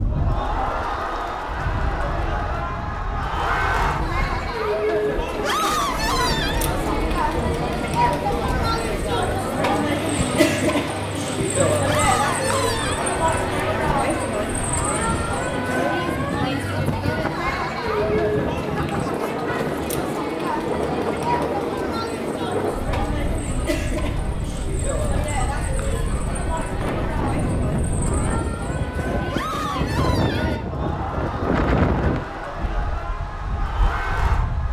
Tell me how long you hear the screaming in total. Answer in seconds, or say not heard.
4 s.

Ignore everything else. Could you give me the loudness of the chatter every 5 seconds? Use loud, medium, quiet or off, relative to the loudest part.
loud, loud, loud, loud, medium, medium, medium.